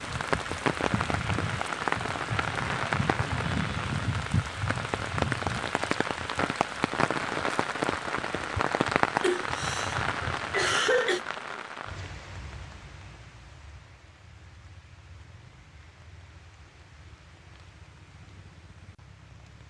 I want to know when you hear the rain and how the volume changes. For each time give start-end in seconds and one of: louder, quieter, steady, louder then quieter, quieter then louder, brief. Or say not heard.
0.0-19.6 quieter.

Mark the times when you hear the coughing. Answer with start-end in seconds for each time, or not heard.
9.2-11.2.